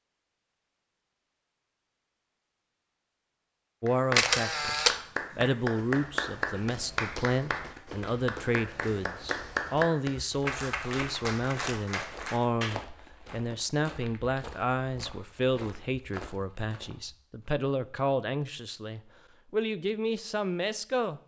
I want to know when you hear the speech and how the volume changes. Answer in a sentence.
The speech can be heard from 3.8 to 21.2 s, at a steady volume.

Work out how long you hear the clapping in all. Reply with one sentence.
You can hear the clapping for 9 seconds altogether.